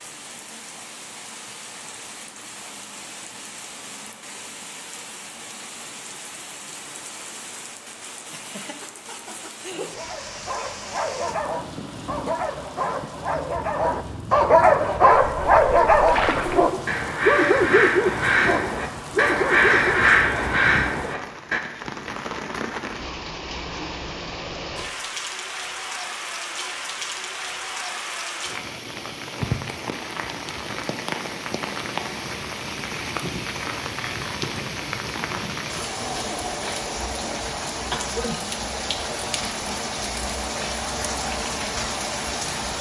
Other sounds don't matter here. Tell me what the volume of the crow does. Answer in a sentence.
The loudness of the crow goes up.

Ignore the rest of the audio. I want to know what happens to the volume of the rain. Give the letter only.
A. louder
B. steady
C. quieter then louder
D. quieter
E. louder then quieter
A.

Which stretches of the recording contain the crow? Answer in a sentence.
You can hear the crow from 15.1 to 21.6 s.